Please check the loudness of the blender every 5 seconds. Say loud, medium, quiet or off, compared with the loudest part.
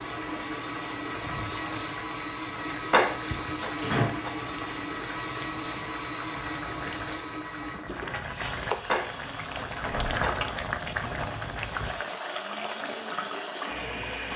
loud, loud, medium.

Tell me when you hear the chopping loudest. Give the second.
3 s.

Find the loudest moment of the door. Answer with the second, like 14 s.
4 s.